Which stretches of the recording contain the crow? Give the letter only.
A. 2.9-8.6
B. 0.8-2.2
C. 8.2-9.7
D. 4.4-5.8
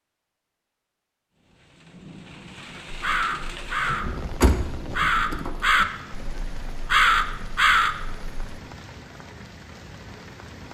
A.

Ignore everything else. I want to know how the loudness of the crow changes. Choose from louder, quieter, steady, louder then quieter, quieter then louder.
louder.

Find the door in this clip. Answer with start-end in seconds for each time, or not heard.
4.4-5.8.